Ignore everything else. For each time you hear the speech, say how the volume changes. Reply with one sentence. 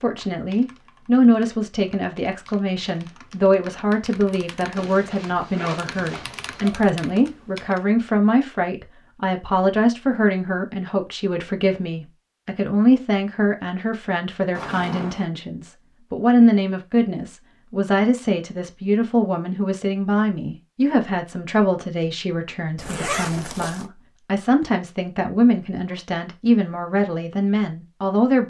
You can hear the speech from 0.0 to 28.4 s, at a steady volume.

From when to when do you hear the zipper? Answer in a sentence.
You can hear the zipper from 4.8 to 6.8 s, from 14.5 to 15.2 s and from 22.8 to 23.9 s.